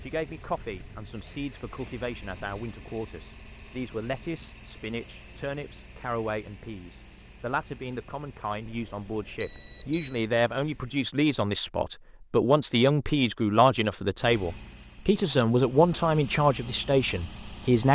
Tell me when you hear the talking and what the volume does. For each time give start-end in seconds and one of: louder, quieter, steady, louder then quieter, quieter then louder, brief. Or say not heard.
0.0-17.9 louder.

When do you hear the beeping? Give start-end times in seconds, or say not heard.
8.7-10.2.